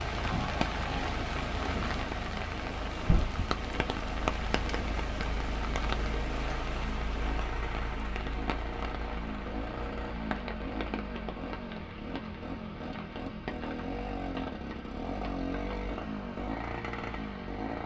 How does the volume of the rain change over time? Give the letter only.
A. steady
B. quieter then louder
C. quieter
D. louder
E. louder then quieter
C.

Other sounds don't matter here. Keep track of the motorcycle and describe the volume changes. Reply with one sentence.
The loudness of the motorcycle goes up.